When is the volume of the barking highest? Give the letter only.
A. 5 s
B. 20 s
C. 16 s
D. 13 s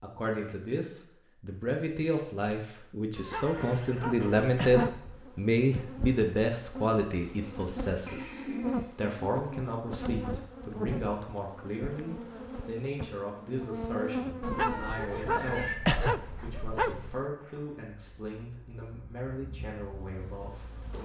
C.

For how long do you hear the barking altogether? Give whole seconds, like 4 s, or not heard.
5 s.